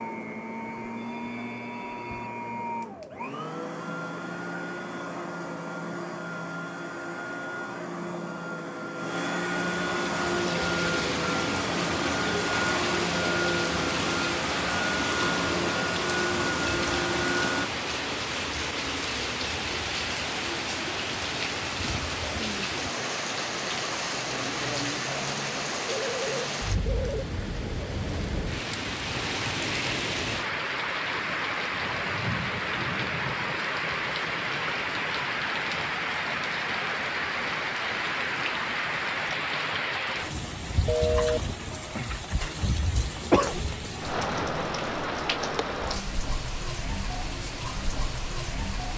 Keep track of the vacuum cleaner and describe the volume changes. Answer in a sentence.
The volume of the vacuum cleaner goes up.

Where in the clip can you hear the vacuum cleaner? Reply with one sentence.
You can hear the vacuum cleaner from 0.0 to 17.7 s.